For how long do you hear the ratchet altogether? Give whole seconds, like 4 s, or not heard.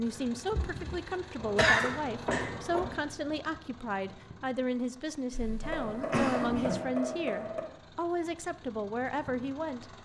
not heard.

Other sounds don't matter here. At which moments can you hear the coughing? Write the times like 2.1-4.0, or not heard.
0.6-2.5, 5.3-6.8.